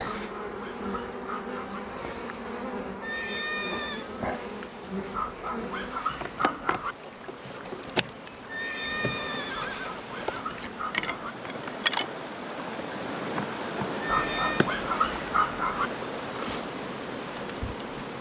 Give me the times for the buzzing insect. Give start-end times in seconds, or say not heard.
0.0-18.1.